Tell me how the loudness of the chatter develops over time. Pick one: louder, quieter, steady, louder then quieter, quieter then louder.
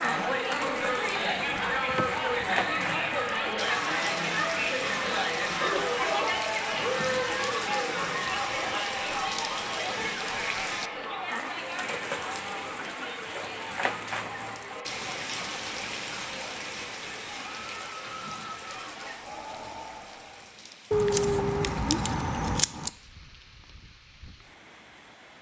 quieter.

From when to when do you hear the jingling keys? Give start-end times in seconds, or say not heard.
1.4-2.5, 20.9-22.9.